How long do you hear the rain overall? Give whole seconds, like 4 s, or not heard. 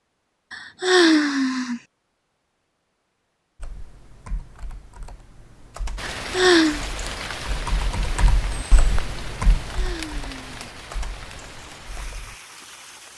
7 s.